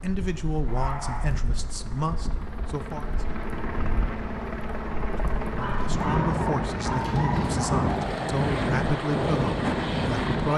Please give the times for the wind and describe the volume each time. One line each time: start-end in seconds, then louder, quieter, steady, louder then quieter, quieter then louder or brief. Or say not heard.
0.0-10.5 louder.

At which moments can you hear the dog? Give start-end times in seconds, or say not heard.
0.7-1.4, 5.5-8.2.